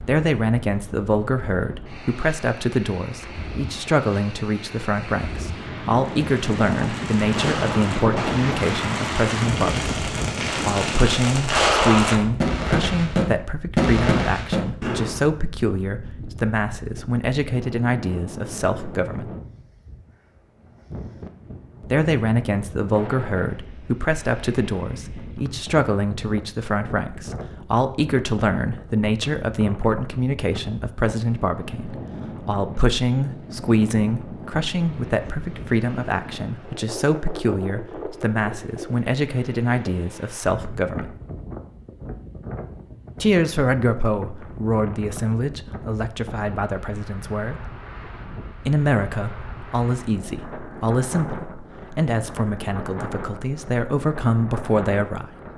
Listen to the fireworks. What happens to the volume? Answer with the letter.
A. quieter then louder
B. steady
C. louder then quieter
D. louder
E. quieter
D.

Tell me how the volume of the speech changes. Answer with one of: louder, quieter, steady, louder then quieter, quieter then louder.
steady.